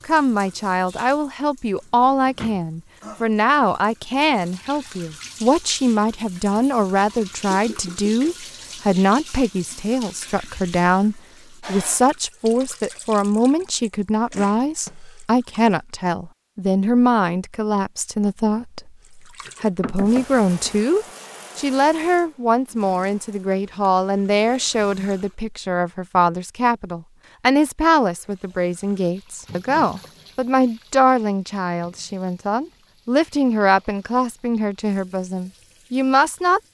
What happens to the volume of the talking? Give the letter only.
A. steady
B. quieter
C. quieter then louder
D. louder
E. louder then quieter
A.